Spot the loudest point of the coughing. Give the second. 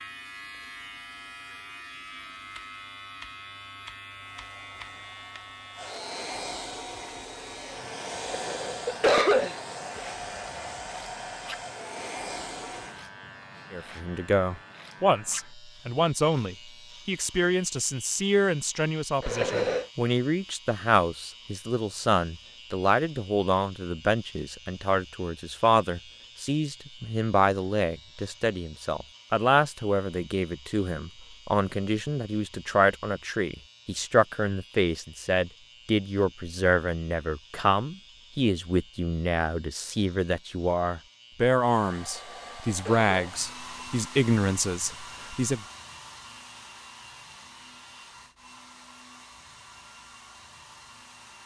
9 s.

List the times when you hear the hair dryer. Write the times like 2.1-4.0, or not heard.
4.2-13.1, 41.5-51.4.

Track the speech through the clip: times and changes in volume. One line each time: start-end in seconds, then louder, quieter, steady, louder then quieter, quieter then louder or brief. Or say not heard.
13.7-45.6 steady.